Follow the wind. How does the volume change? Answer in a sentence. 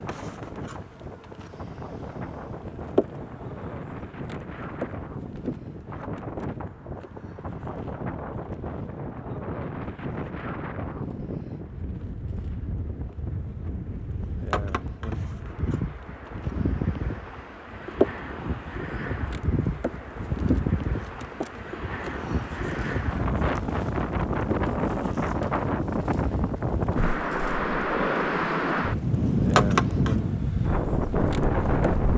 The volume of the wind goes up.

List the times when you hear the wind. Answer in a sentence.
The wind can be heard from 0.0 to 32.1 s.